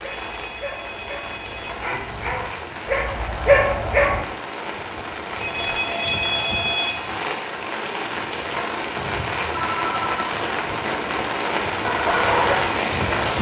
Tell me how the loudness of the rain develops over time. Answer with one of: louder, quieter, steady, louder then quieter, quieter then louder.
louder.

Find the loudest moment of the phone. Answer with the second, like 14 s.
6 s.